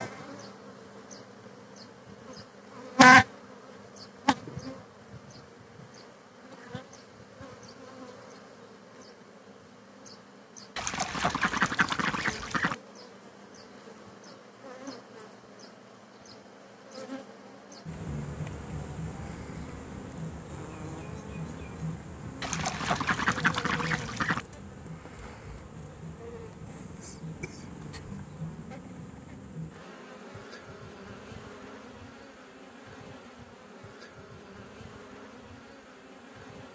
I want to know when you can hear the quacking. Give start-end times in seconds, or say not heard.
10.8-12.8, 22.4-24.4.